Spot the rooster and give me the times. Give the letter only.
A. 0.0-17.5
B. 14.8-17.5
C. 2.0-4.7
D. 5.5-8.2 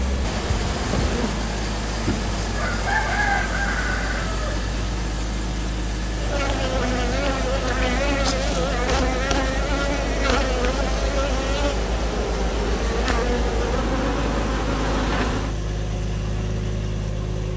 C.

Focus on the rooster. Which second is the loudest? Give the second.
3 s.